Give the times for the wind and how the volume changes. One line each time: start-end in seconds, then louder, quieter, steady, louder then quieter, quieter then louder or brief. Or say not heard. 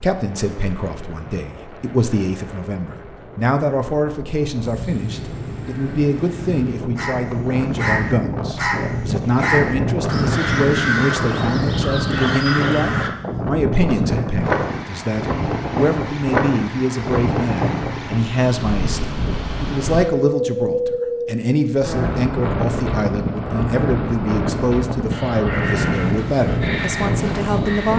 0.0-27.9 louder.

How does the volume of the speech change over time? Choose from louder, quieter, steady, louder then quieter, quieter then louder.
steady.